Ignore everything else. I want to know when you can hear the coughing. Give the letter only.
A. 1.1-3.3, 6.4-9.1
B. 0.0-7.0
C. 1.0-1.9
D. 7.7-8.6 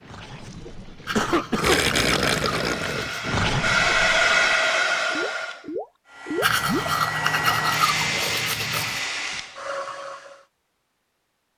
C.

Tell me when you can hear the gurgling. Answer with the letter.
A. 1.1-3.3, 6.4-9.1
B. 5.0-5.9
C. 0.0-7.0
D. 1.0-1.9
C.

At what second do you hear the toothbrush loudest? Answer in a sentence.
The loudest moment of the toothbrush is at 7 seconds.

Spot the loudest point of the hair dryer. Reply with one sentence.
The loudest moment of the hair dryer is at 4 seconds.